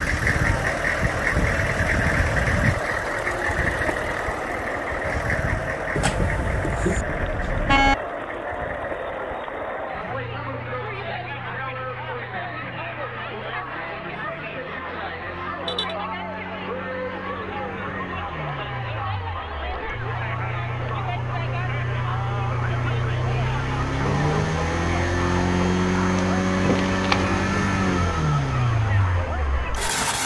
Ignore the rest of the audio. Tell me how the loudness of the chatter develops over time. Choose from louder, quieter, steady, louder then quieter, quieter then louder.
steady.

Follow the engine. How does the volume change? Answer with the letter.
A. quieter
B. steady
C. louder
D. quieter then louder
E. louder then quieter
D.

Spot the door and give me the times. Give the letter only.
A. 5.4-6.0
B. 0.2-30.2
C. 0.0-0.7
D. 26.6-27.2
D.